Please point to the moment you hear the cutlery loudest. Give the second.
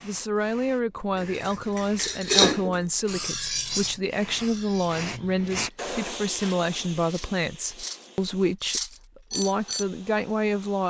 2 s.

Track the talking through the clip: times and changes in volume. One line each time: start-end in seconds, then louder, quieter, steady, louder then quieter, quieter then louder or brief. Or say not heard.
0.0-10.8 steady.